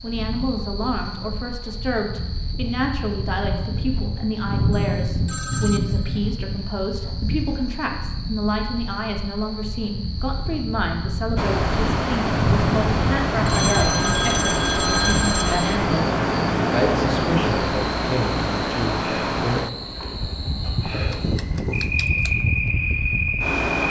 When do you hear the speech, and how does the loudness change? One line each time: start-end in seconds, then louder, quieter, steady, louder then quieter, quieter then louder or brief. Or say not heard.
0.0-19.6 steady.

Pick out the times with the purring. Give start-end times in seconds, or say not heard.
not heard.